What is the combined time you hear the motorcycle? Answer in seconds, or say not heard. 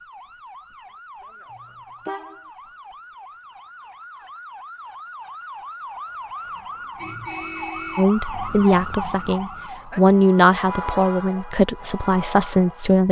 not heard.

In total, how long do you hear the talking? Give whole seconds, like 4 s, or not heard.
5 s.